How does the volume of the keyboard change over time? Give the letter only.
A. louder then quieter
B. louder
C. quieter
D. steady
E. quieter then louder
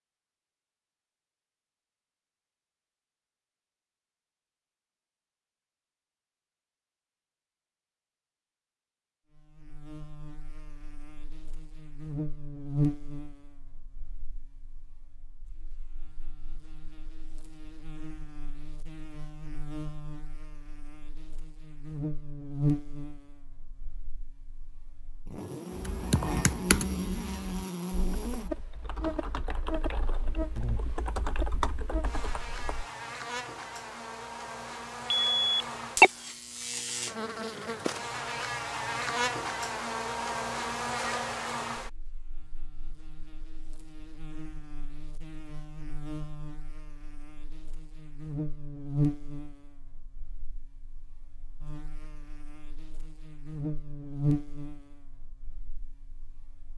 E.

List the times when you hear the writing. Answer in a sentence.
The writing can't be heard in this clip.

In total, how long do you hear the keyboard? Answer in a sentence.
The keyboard can be heard for 7 seconds in total.